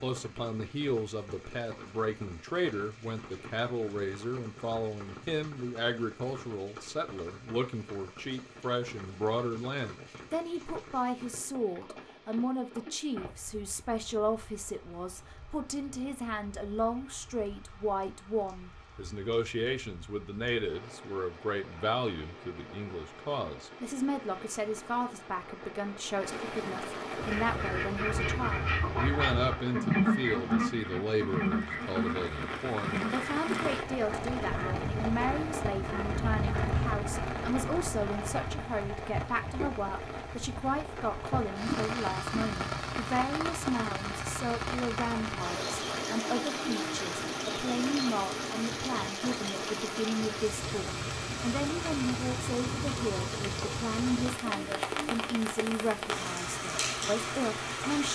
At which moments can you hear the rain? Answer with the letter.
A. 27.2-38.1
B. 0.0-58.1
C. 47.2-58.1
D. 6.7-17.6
B.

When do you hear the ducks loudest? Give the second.
30 s.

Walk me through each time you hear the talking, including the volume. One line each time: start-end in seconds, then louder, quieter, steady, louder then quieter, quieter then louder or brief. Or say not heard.
0.0-58.1 steady.